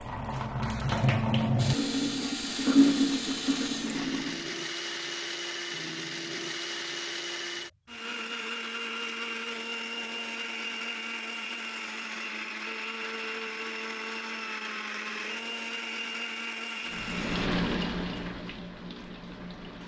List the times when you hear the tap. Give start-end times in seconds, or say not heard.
0.0-4.5, 16.9-19.8.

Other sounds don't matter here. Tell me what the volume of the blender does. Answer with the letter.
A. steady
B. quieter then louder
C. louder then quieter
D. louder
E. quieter
A.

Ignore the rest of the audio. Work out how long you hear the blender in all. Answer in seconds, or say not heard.
16 s.